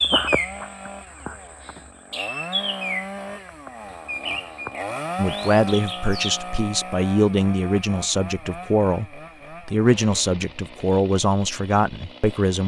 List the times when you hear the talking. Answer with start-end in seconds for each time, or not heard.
5.2-12.6.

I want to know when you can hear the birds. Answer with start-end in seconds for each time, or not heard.
0.0-6.4.